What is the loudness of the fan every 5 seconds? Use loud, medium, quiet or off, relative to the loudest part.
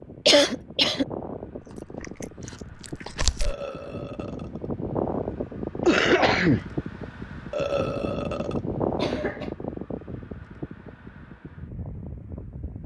medium, loud, medium.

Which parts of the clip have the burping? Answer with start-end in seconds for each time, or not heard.
3.4-4.7, 7.5-8.6.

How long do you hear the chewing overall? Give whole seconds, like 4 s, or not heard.
2 s.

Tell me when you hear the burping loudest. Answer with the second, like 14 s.
8 s.